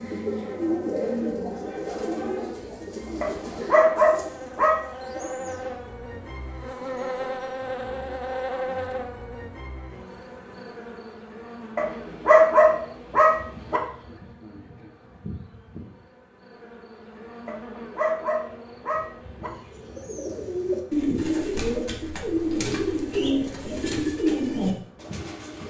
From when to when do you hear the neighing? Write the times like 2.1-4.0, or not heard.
not heard.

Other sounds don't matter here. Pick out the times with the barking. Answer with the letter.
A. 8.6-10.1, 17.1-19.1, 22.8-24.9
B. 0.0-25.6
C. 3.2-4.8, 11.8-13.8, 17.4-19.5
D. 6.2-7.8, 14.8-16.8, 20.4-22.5
C.